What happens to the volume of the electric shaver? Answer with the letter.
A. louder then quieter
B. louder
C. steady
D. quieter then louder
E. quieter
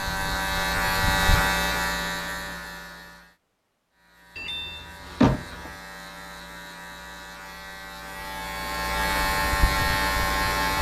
D.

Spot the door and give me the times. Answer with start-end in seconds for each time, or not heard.
4.3-5.7.